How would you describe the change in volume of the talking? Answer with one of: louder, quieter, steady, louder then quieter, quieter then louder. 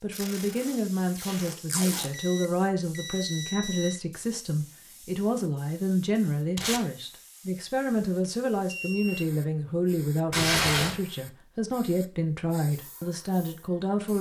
steady.